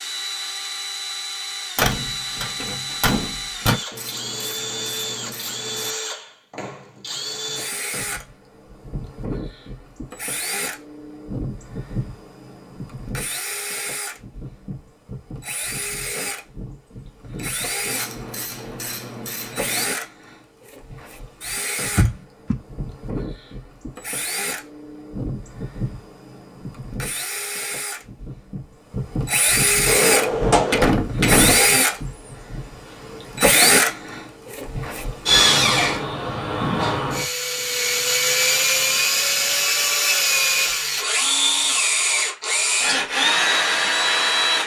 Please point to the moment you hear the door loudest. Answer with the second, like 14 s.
31 s.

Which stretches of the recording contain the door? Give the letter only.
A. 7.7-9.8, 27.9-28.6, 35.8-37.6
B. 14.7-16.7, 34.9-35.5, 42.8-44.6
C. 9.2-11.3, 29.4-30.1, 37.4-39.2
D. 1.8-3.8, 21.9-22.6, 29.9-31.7
D.